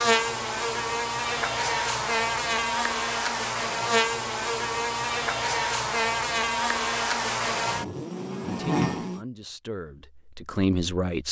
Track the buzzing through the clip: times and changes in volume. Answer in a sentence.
You can hear the buzzing from 0.0 to 9.2 s, at a steady volume.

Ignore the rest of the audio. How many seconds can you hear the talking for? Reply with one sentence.
You can hear the talking for 3 seconds altogether.